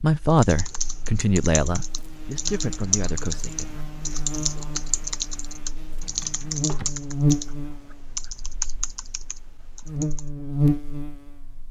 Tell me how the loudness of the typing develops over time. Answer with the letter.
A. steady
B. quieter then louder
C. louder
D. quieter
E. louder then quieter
A.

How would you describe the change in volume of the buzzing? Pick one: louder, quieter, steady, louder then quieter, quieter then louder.
louder.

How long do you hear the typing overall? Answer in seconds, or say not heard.
10 s.